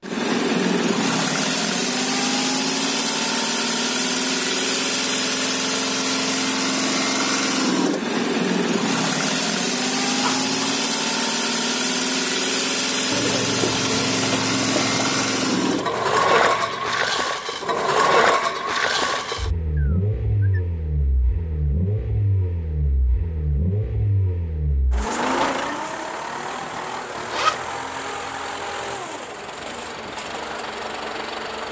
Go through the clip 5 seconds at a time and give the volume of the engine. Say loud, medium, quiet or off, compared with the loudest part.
loud, loud, loud, loud, medium, medium, medium.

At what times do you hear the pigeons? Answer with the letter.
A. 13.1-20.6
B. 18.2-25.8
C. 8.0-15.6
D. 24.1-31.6
A.